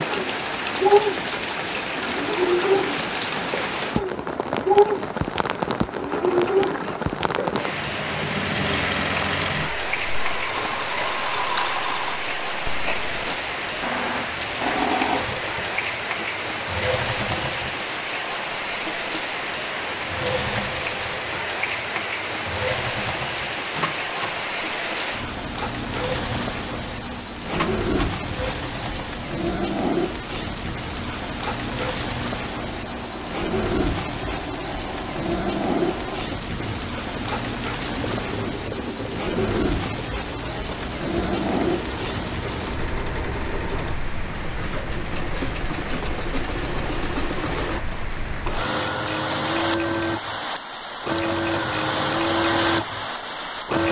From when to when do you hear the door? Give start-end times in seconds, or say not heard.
23.7-24.4, 27.5-28.2.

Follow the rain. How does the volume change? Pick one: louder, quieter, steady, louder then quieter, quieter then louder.
steady.